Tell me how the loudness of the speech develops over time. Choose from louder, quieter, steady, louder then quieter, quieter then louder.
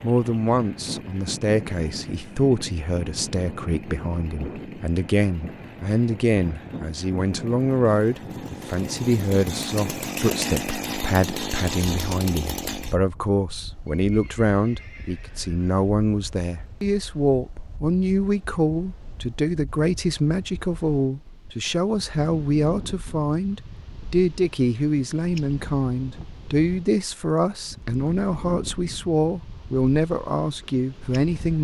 steady.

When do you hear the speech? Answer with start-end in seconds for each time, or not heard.
0.0-31.5.